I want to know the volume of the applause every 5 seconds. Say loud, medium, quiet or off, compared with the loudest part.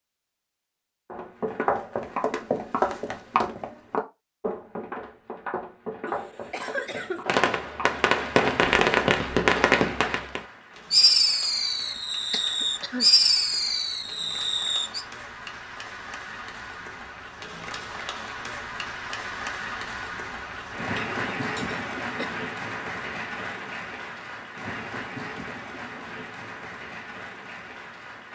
off, off, medium, loud, loud, medium.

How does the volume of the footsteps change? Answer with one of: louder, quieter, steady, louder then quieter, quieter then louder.
quieter.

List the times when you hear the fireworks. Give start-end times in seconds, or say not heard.
7.2-15.1.